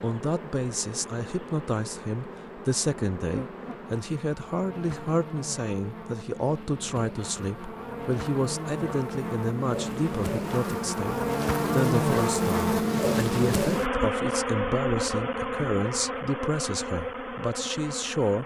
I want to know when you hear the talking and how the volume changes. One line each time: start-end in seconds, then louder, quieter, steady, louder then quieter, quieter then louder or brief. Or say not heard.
0.0-18.4 steady.